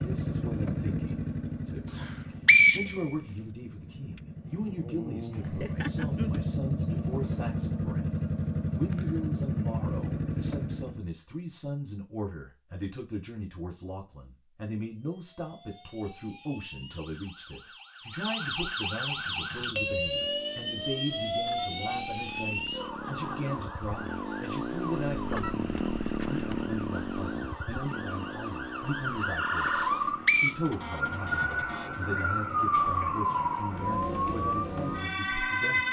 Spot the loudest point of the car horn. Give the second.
6 s.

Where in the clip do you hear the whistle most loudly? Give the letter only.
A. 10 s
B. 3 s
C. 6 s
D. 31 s
B.